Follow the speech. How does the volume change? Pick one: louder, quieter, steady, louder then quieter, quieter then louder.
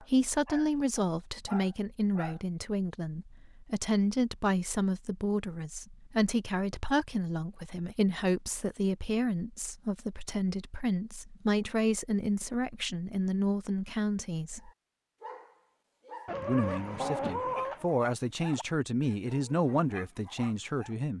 steady.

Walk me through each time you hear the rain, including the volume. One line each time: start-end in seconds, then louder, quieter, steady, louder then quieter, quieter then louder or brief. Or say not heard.
not heard.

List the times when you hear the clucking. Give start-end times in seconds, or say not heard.
16.2-17.9.